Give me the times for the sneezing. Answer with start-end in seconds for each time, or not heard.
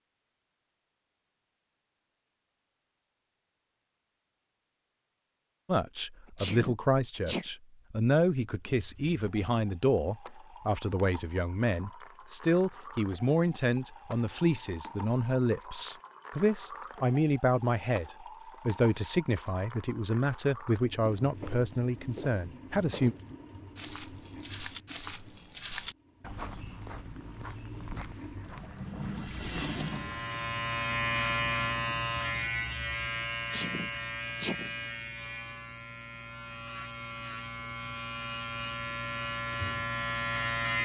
6.2-7.5, 33.4-34.8.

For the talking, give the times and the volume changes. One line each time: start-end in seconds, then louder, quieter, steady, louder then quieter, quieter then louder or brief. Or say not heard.
5.7-23.1 steady.